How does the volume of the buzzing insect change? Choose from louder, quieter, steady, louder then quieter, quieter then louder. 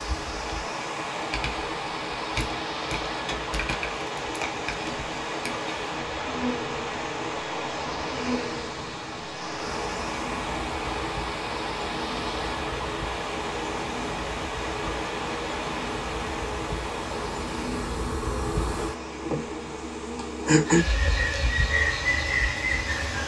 louder.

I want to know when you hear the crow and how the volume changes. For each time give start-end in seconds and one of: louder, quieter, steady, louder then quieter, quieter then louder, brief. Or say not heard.
not heard.